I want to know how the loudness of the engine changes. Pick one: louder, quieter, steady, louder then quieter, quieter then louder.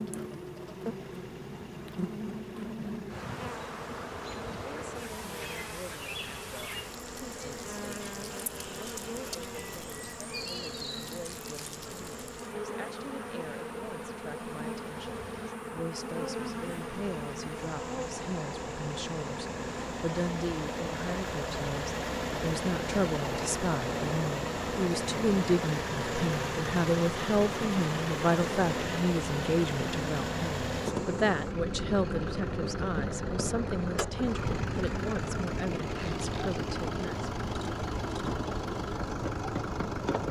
louder.